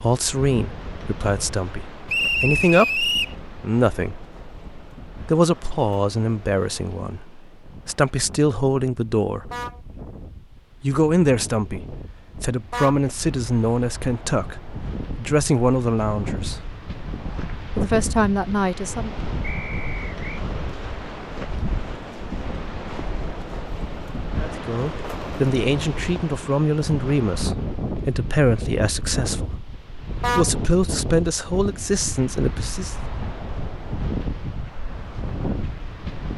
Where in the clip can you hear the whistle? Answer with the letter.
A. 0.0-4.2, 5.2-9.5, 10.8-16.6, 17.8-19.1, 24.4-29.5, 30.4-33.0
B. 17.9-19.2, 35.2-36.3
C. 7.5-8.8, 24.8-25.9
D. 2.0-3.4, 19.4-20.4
D.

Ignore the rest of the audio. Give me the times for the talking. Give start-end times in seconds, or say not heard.
0.0-4.2, 5.2-9.5, 10.8-16.6, 17.8-19.1, 24.4-29.5, 30.4-33.0.